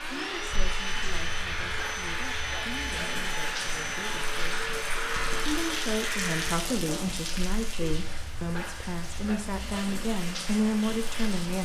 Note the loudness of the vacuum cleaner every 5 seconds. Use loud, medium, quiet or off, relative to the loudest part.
loud, loud, off.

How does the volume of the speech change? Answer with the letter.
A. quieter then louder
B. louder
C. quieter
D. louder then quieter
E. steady
B.